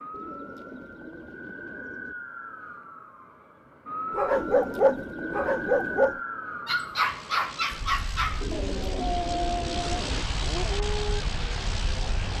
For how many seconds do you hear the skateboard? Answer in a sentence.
You can't hear the skateboard here.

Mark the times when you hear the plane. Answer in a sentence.
You can hear the plane from 7.0 to 12.3 s.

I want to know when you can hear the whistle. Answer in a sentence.
The whistle can't be heard in this clip.